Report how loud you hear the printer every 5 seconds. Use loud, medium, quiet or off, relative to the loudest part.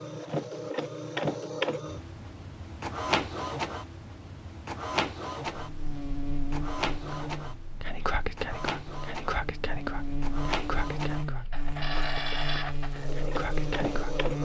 loud, medium, loud.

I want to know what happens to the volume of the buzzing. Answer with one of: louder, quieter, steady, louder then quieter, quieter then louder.
quieter then louder.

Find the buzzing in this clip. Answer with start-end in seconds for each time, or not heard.
5.5-14.3.